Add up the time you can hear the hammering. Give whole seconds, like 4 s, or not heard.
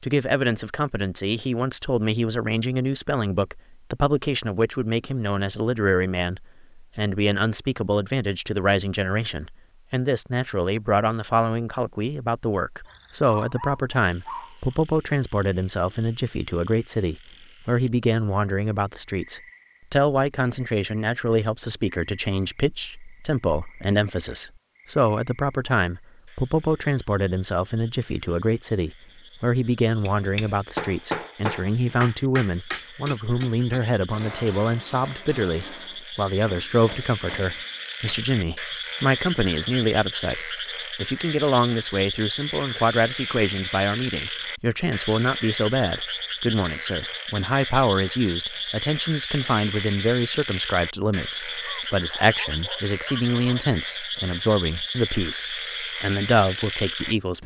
9 s.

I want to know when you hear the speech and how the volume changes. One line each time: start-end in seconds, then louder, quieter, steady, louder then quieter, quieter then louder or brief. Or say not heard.
0.0-57.4 steady.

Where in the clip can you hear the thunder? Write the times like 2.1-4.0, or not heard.
not heard.